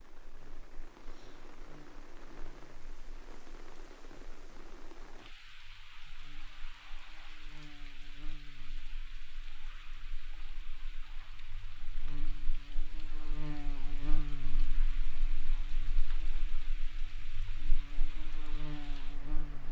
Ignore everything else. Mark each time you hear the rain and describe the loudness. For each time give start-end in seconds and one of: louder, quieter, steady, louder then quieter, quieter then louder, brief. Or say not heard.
0.0-19.6 steady.